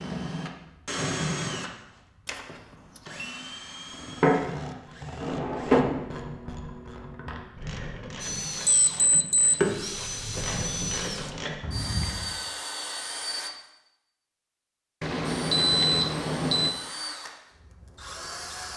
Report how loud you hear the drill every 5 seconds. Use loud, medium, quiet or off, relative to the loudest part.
loud, loud, loud, medium.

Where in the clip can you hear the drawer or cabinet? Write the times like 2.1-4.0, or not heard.
5.2-6.0.